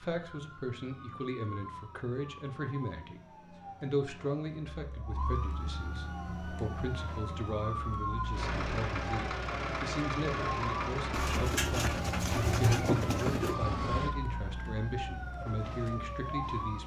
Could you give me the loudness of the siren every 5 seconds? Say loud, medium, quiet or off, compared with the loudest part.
medium, loud, loud, loud.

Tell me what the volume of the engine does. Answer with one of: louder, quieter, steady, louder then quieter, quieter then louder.
steady.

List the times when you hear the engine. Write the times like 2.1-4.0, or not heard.
8.3-14.2.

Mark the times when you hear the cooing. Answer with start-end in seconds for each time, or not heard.
11.1-13.6.